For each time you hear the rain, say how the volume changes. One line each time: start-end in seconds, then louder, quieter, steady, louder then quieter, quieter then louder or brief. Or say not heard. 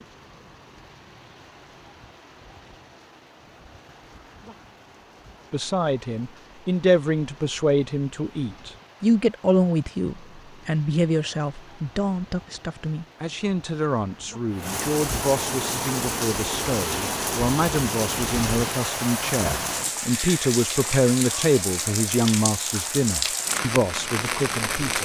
0.0-24.9 louder.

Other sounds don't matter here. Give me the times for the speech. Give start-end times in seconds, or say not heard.
5.5-24.9.